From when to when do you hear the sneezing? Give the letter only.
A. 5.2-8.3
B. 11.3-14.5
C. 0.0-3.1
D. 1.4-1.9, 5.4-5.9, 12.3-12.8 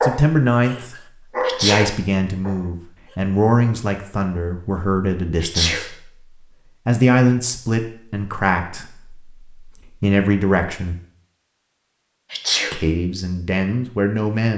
D.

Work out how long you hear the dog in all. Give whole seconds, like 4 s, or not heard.
3 s.